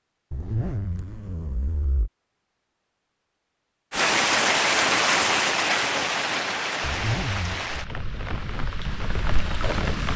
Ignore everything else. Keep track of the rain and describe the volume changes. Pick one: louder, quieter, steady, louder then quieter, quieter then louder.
quieter.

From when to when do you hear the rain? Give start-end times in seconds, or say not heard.
3.9-10.1.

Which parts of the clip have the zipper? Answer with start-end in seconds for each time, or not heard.
0.3-2.1, 6.8-7.8.